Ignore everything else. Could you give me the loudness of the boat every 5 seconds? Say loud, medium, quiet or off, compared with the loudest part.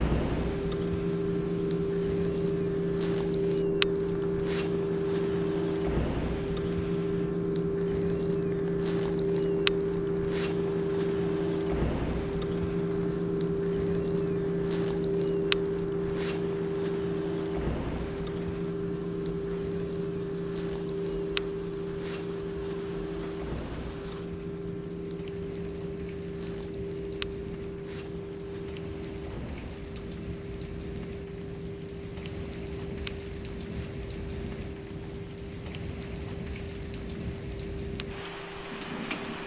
loud, loud, loud, loud, medium, medium, quiet, quiet.